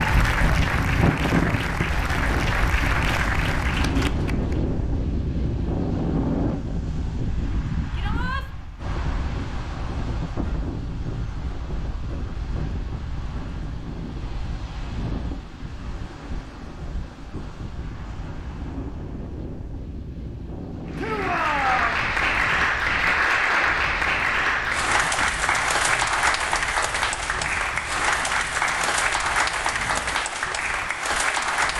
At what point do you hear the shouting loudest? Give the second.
22 s.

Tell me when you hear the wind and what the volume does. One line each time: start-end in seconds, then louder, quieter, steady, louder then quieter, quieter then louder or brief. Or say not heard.
0.0-31.7 quieter.